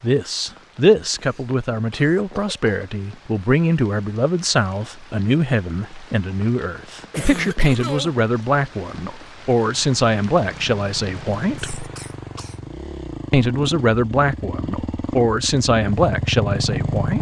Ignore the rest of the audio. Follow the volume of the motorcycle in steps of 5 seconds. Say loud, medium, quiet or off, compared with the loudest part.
off, off, medium, loud.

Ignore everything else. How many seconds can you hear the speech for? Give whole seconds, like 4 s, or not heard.
16 s.